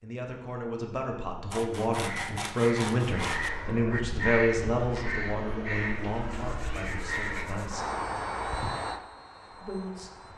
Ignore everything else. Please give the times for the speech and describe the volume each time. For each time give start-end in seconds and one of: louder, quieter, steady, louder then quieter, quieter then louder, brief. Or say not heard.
0.0-8.0 louder then quieter
9.5-10.3 brief.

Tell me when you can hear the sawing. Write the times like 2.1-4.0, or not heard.
1.5-3.5, 6.3-7.8.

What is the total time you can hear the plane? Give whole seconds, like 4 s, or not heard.
7 s.